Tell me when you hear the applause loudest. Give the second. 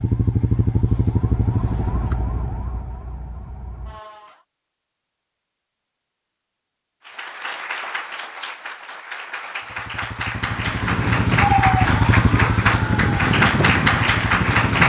14 s.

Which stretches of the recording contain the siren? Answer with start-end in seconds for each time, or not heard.
0.0-4.5, 10.3-14.8.